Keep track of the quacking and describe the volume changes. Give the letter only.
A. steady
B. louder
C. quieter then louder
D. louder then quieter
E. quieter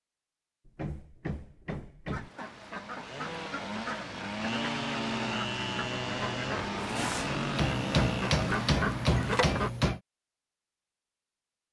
B.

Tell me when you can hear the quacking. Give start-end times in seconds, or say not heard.
2.1-9.7.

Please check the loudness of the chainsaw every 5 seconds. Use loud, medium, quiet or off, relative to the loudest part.
loud, loud, off.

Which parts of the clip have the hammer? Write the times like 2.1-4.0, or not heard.
0.7-2.3, 7.5-10.0.